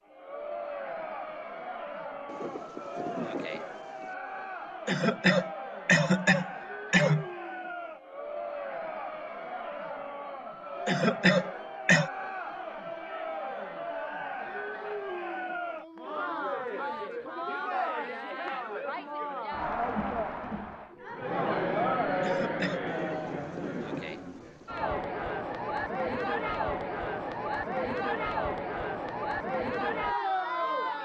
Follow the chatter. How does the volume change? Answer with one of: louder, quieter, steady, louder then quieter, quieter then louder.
louder.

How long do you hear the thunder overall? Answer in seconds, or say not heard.
4 s.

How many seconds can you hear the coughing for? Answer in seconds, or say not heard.
4 s.